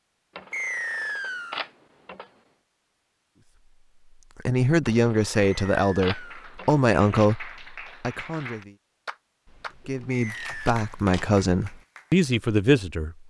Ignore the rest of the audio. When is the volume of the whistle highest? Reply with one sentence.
The loudest moment of the whistle is at 1 second.